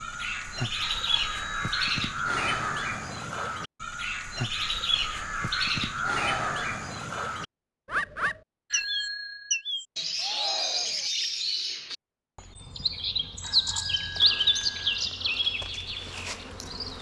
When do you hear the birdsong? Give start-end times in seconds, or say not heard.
0.0-16.9.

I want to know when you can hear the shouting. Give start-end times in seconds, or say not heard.
6.2-6.8, 10.2-11.1.